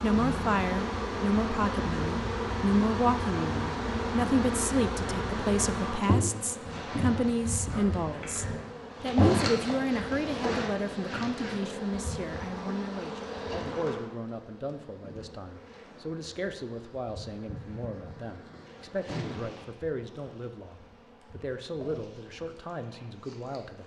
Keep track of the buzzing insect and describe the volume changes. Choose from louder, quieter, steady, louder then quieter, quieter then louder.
quieter.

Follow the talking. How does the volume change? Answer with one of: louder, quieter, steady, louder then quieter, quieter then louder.
quieter.